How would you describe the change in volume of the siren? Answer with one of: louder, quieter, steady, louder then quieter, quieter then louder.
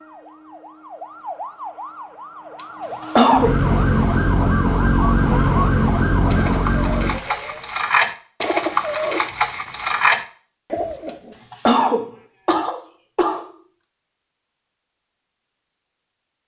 louder.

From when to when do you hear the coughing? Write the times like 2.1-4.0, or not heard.
2.5-3.5, 11.1-13.4.